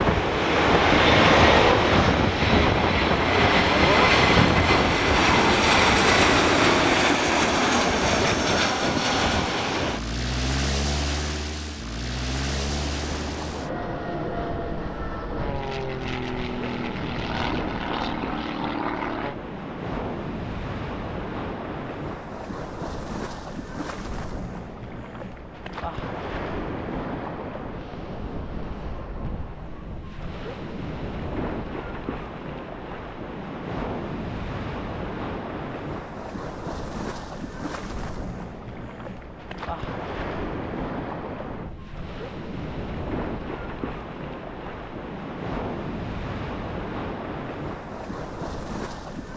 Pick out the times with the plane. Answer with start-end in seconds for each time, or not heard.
0.0-19.4.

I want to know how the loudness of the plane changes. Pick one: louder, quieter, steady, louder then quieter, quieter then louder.
quieter.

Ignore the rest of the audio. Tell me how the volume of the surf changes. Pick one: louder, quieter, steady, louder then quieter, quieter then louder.
steady.